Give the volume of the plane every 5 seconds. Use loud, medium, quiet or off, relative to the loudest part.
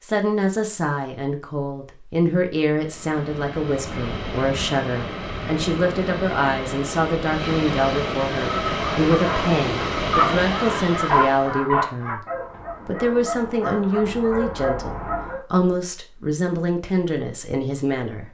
medium, loud, loud, off.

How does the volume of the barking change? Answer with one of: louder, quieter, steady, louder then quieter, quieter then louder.
louder then quieter.